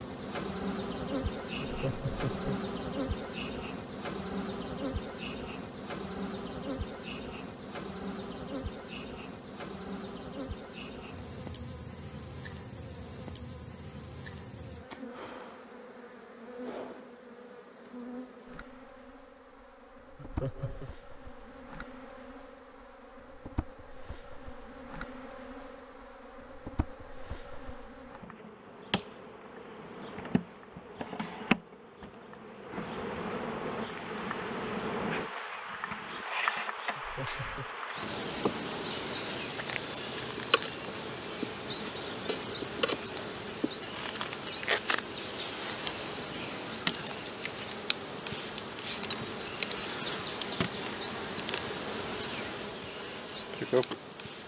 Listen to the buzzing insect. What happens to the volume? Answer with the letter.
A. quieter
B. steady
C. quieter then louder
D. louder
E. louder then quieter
C.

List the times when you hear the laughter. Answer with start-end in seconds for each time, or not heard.
1.6-2.6, 20.1-20.9, 37.0-37.8.